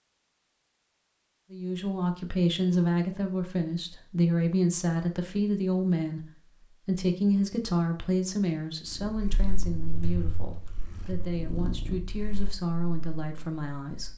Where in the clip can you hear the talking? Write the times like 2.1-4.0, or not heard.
1.5-14.1.